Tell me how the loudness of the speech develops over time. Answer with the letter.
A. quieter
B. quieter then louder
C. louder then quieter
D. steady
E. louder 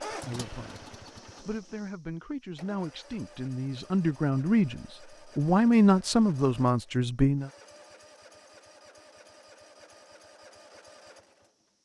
E.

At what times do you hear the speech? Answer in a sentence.
The speech can be heard from 0.1 to 7.5 s.